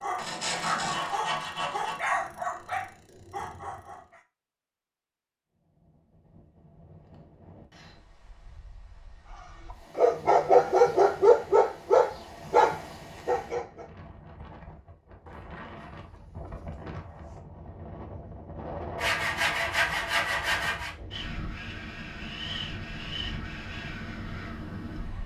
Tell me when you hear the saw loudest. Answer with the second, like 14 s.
20 s.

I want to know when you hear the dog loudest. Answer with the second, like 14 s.
11 s.